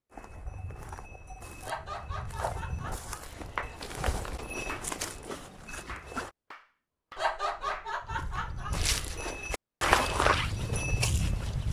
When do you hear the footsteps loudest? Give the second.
10 s.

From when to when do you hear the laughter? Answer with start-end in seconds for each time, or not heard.
1.6-4.0, 7.2-9.4.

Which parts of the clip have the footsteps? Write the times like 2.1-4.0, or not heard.
0.1-6.3, 8.0-11.6.